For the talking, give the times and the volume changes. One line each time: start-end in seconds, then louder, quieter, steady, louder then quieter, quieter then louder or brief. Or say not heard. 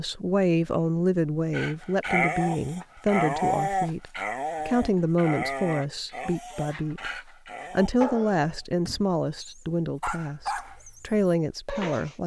0.0-12.2 steady.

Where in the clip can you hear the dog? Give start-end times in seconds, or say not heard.
1.5-12.2.